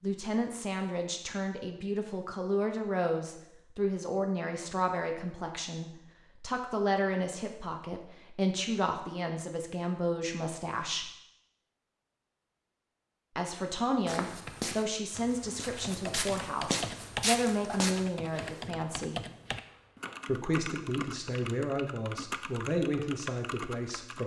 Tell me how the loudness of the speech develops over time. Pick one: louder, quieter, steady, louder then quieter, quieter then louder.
steady.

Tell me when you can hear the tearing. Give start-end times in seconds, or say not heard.
not heard.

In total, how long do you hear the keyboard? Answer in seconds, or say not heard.
10 s.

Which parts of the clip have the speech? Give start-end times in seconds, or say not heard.
0.0-11.1, 13.3-19.2, 20.2-24.2.